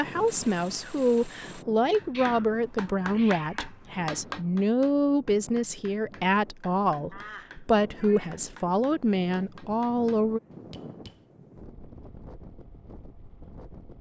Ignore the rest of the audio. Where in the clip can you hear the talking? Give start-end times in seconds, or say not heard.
0.0-10.4.